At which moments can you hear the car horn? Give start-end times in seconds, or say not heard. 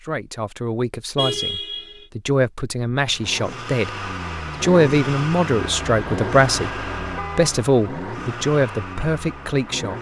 1.1-2.0, 5.5-7.6.